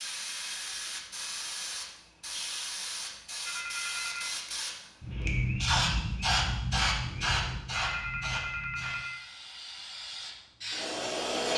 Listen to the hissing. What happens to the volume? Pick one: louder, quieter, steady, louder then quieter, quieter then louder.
louder then quieter.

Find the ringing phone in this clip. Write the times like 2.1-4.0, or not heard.
3.5-4.3, 7.7-9.2.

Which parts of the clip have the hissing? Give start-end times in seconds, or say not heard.
0.0-11.5.